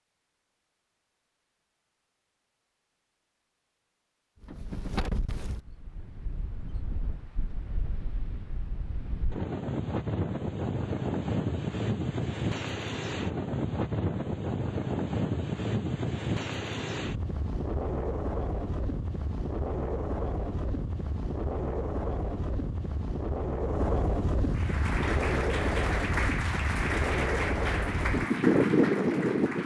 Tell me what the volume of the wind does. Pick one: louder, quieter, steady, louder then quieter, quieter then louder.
louder.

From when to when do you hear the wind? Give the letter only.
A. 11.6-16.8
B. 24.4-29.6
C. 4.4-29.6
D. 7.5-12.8
C.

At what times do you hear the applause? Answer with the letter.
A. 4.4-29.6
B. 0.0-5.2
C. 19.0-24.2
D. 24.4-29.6
D.